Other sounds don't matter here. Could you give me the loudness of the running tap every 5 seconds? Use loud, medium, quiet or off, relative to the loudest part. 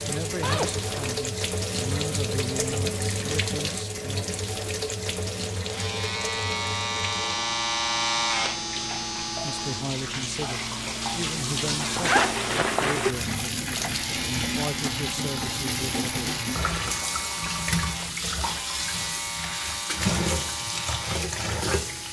loud, medium, loud, loud, loud.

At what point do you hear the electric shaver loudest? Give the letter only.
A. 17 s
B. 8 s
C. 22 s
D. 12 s
B.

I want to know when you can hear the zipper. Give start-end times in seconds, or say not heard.
0.4-1.1, 11.8-13.3.